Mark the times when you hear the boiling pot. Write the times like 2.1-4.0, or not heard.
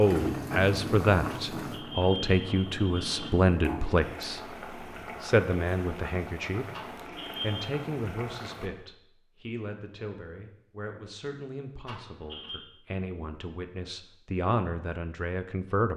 0.0-8.7.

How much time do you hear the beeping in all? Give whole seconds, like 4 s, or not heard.
4 s.